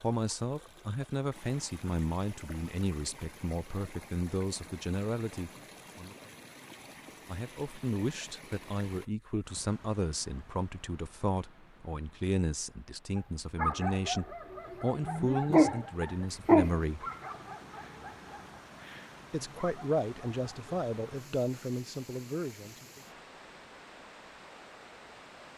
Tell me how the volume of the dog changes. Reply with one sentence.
The volume of the dog goes up, then down.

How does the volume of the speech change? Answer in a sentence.
The loudness of the speech stays about the same.